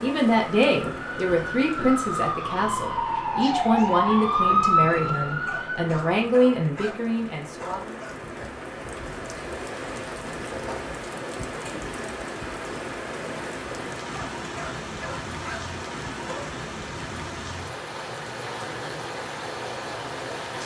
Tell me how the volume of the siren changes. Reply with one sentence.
The volume of the siren goes up.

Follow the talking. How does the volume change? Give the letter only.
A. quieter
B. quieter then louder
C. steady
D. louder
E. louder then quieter
C.